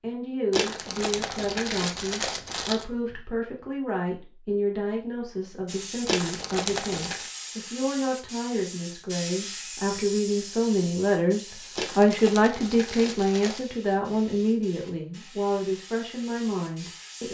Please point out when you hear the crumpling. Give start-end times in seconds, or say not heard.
0.5-2.9, 6.0-7.3, 11.8-13.8.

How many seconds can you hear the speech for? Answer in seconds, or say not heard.
17 s.